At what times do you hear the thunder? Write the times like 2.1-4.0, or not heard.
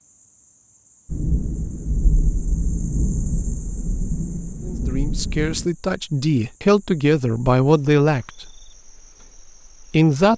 1.1-5.7.